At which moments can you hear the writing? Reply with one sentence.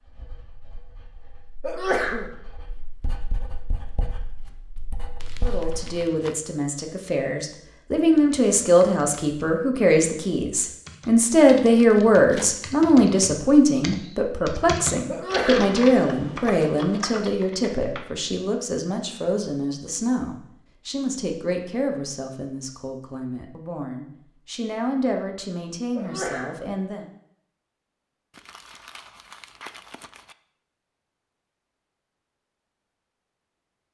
The writing can be heard from 0.0 to 6.0 s.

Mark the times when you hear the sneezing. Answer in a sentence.
The sneezing can be heard from 1.6 to 2.3 s, from 15.1 to 15.7 s and from 25.9 to 26.6 s.